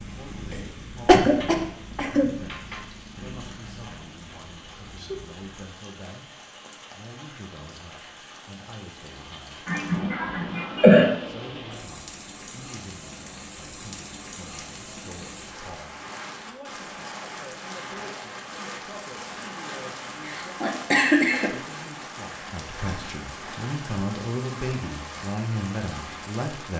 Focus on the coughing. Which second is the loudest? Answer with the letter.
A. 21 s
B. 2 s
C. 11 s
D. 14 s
C.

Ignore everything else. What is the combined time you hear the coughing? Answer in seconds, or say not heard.
4 s.